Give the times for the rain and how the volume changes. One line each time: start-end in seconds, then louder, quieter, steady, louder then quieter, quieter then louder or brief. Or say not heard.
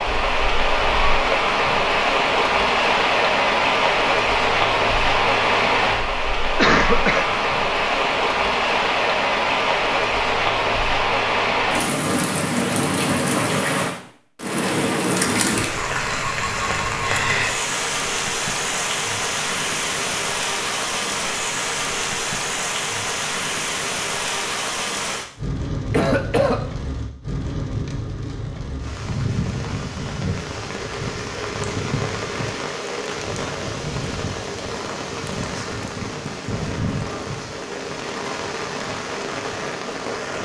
0.0-40.4 quieter.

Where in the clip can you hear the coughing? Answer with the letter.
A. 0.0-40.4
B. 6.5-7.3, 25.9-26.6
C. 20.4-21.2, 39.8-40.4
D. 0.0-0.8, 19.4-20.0
B.